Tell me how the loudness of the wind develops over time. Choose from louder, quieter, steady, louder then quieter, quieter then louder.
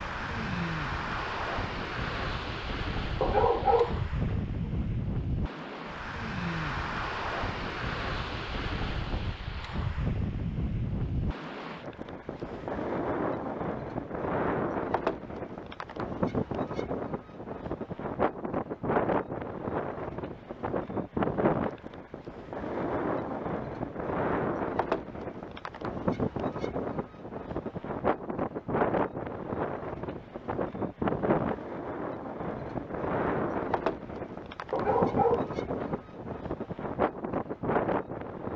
steady.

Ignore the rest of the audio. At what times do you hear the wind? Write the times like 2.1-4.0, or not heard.
0.0-38.5.